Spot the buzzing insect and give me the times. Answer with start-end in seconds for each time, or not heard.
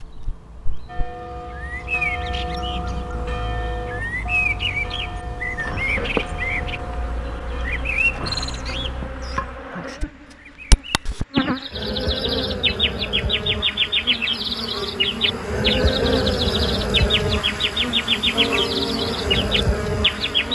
5.5-20.5.